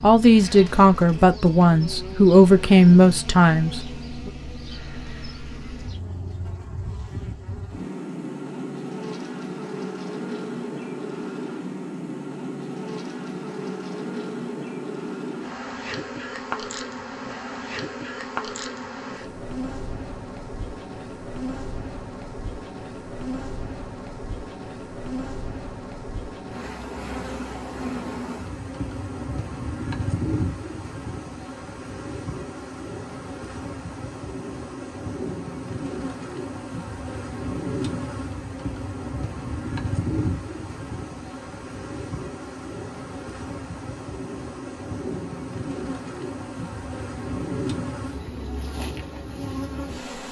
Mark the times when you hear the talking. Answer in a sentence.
You can hear the talking from 0.0 to 4.3 s.